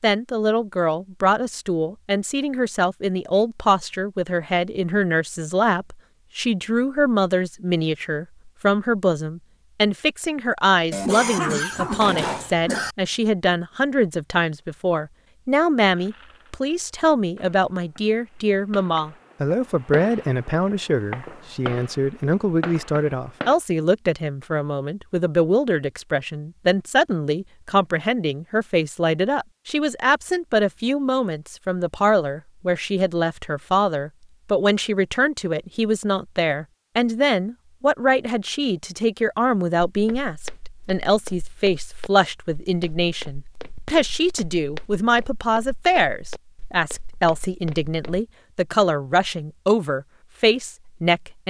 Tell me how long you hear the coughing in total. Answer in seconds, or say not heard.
2 s.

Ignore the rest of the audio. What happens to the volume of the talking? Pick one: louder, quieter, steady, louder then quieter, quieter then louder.
steady.